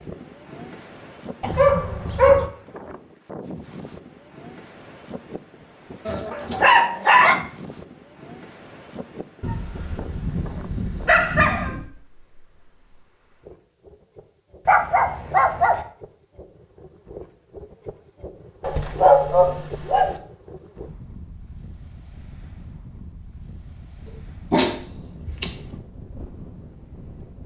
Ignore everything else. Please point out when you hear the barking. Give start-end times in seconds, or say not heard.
1.4-2.5, 6.0-7.3, 9.4-11.8, 14.7-15.8, 18.6-20.1, 24.5-25.8.